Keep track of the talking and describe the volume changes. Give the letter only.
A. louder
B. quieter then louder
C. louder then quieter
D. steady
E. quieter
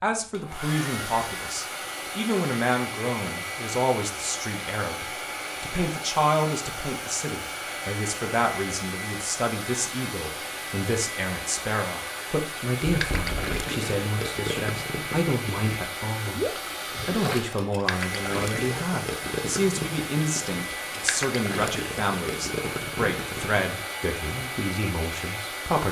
D.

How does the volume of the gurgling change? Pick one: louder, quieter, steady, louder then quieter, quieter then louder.
steady.